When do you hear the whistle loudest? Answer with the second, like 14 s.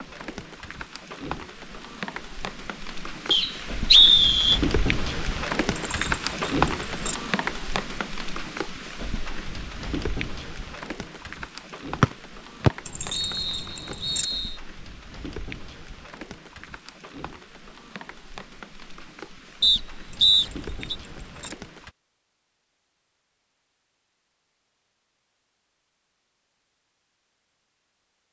4 s.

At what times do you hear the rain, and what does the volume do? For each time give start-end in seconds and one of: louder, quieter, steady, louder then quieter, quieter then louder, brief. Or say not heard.
0.0-21.9 louder then quieter.